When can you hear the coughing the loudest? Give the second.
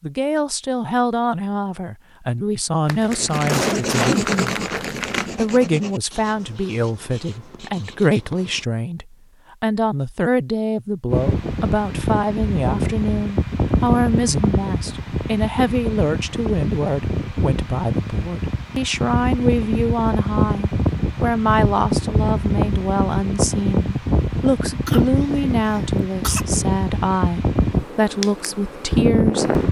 4 s.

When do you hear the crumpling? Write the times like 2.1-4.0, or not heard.
2.9-5.5.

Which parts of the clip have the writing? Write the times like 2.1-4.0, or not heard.
3.1-8.7.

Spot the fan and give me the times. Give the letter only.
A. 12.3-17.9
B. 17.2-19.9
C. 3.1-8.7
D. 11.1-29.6
D.